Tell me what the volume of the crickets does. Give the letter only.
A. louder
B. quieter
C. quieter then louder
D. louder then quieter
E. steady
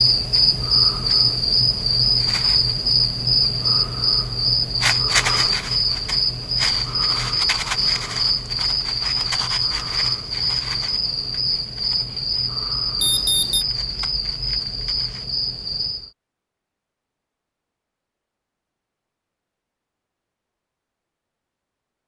B.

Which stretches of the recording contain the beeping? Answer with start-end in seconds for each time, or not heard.
13.0-13.7.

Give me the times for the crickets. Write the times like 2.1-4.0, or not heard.
0.0-16.1.